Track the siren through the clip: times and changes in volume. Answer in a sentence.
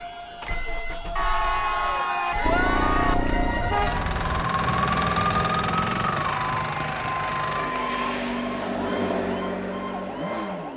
The siren can be heard from 0.0 to 10.7 s, getting louder then quieter.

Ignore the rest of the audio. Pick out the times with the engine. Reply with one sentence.
You can hear the engine from 0.0 to 10.7 s.